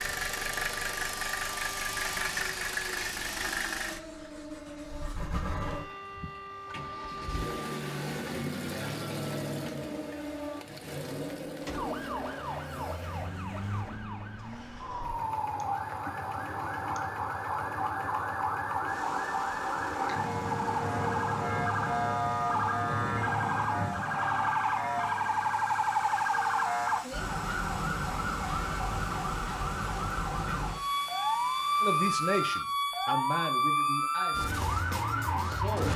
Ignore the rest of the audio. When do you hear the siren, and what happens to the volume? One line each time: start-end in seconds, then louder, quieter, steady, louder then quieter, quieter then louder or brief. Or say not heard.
0.0-35.9 louder.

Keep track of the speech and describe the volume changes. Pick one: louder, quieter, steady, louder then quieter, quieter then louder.
quieter.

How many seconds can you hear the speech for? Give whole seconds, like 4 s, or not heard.
4 s.